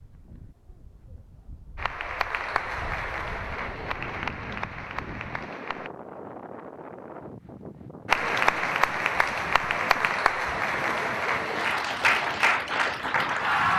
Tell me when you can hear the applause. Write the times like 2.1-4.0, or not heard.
1.8-5.9, 8.1-13.7.